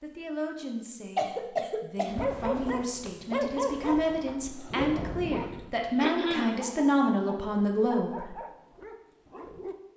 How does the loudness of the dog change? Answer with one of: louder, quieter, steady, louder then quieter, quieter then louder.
quieter.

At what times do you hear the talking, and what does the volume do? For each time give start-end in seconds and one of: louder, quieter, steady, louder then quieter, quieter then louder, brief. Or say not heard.
0.0-8.3 louder.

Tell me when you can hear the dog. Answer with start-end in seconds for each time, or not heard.
2.0-9.8.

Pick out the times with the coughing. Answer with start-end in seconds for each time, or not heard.
1.1-2.8, 6.0-6.5.